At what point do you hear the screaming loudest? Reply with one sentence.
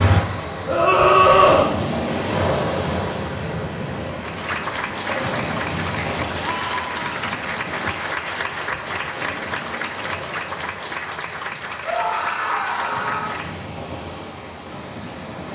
The loudest moment of the screaming is at 1 second.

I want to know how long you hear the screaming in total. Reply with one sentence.
You can hear the screaming for 3 seconds altogether.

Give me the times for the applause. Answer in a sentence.
The applause can be heard from 4.2 to 13.7 s.